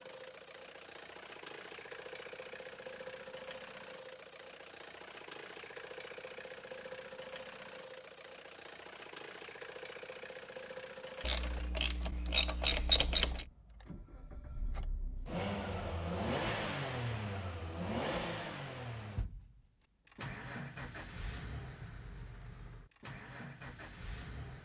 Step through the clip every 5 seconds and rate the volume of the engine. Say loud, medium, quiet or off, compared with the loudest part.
medium, medium, medium, loud, medium.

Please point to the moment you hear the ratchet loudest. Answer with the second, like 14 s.
13 s.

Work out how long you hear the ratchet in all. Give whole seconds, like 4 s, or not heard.
2 s.